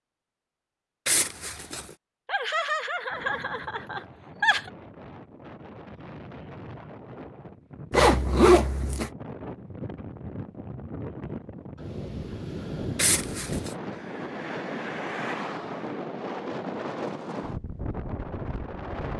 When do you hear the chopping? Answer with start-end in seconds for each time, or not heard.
not heard.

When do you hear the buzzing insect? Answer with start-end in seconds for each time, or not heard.
not heard.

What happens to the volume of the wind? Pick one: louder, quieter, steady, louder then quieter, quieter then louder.
louder.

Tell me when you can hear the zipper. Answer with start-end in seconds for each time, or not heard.
1.1-1.9, 7.9-9.1, 12.9-13.8.